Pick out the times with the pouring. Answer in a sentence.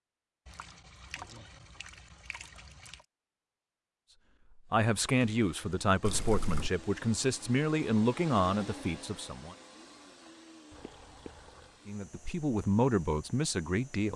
The pouring can be heard from 0.5 to 3.0 s, from 6.0 to 6.7 s and from 10.7 to 11.8 s.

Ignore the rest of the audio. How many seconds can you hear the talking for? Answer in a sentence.
The talking can be heard for 7 seconds in total.